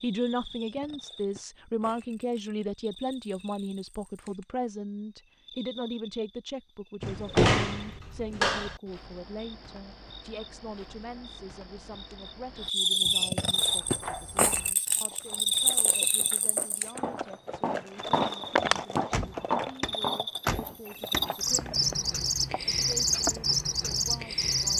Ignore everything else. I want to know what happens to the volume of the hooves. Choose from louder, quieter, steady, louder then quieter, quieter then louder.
louder then quieter.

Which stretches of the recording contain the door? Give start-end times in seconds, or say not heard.
7.0-8.8, 18.9-21.3.